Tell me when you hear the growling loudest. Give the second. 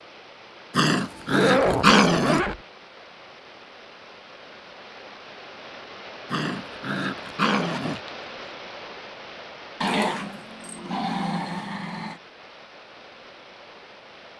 2 s.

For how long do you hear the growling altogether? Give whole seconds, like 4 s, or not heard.
6 s.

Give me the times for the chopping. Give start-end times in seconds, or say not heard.
not heard.